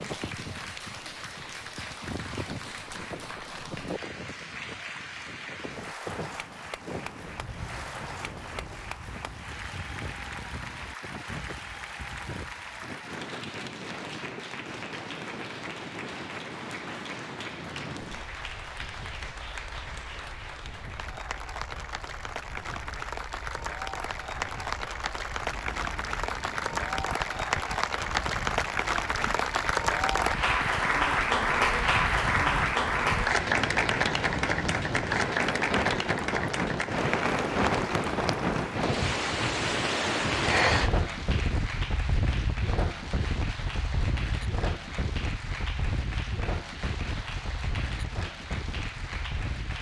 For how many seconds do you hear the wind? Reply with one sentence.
You can hear the wind for 50 seconds altogether.